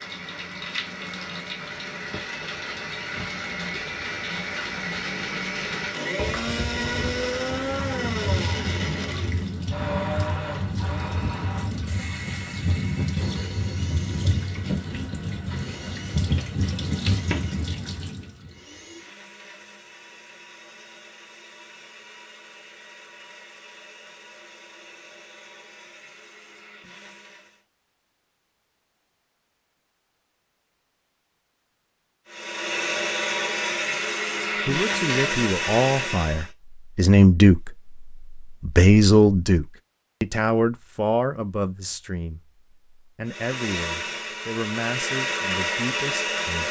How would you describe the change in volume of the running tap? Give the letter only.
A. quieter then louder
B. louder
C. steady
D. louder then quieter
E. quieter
B.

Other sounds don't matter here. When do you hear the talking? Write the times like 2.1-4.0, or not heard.
34.6-46.6.